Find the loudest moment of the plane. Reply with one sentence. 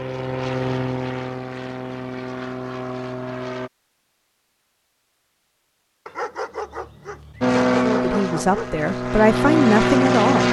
The volume of the plane peaks at 10 seconds.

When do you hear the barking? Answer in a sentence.
The barking can be heard from 6.0 to 8.8 s.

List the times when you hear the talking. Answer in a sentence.
You can hear the talking from 7.8 to 10.4 s.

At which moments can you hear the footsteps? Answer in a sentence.
You can't hear the footsteps here.